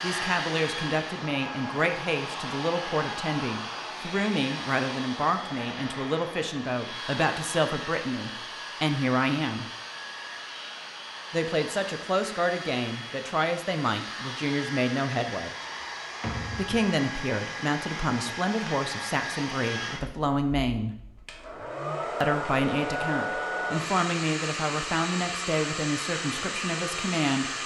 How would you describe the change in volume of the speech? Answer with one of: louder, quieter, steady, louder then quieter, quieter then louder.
steady.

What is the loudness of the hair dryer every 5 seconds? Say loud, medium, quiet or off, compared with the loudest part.
loud, medium, medium, loud, loud, loud.